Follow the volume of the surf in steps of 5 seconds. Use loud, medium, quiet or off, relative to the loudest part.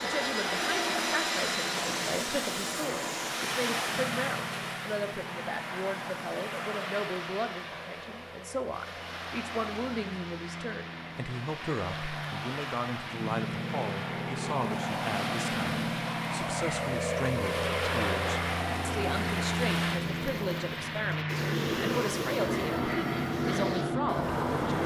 loud, medium, medium, loud, loud.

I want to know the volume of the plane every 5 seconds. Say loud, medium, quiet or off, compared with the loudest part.
loud, quiet, medium, loud, loud.